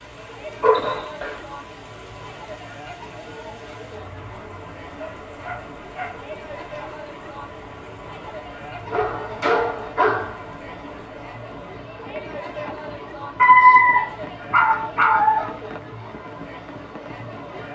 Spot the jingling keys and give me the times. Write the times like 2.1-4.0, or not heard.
not heard.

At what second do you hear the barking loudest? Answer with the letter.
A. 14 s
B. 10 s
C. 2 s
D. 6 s
A.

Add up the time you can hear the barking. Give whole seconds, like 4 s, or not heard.
6 s.